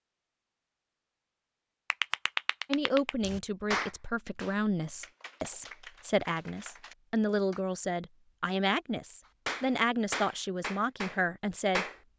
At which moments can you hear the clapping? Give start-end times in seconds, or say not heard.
1.9-7.6, 9.4-11.9.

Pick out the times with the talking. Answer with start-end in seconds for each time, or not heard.
2.6-12.1.